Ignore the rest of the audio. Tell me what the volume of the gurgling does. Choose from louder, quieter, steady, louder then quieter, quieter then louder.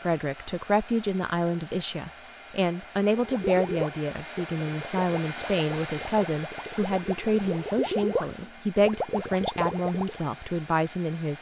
quieter then louder.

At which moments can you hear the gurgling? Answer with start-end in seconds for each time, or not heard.
3.1-10.3.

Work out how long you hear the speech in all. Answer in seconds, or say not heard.
11 s.